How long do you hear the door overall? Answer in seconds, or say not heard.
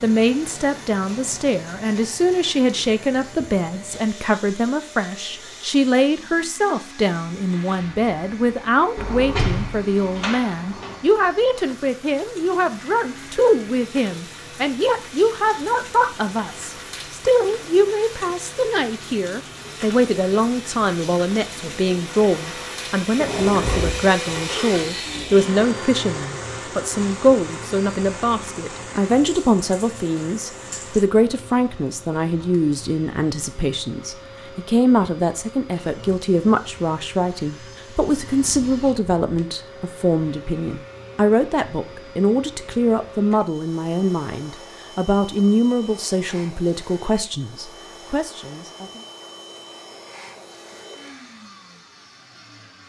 5 s.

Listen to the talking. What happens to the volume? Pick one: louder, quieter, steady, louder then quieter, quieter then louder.
steady.